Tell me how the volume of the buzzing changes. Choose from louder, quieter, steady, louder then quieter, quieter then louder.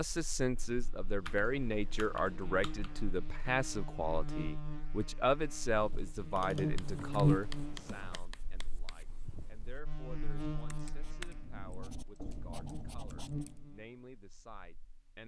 louder then quieter.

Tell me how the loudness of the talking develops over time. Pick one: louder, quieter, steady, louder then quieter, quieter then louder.
quieter.